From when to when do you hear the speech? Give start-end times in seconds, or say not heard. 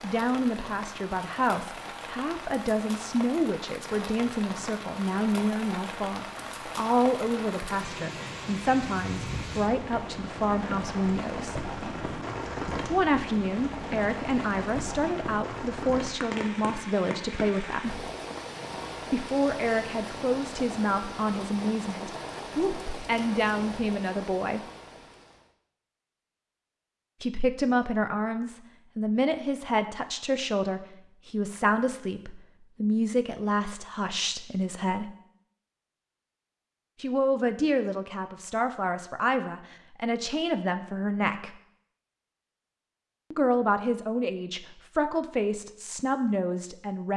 0.0-11.6, 12.9-18.1, 19.1-24.6, 27.2-35.1, 37.0-41.5, 43.3-47.1.